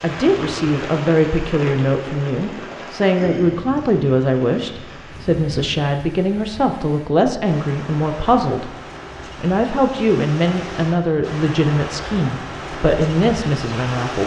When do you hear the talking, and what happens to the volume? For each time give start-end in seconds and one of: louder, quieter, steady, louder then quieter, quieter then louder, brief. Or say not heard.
0.0-8.8 steady
9.3-14.2 steady.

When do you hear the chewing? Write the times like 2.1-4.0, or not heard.
not heard.